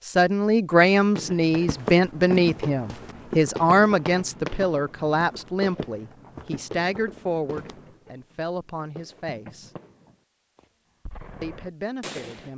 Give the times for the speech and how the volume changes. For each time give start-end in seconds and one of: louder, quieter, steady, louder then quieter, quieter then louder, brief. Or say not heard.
0.1-9.7 quieter
11.4-12.5 brief.